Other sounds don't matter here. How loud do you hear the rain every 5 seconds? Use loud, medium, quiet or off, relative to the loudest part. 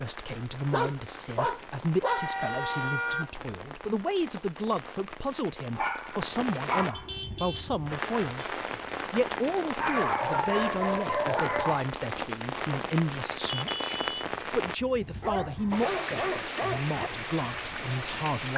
medium, loud, loud, loud.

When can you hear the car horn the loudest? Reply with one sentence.
The loudest moment of the car horn is at 3 seconds.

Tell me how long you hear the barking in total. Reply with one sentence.
The barking can be heard for 7 seconds in total.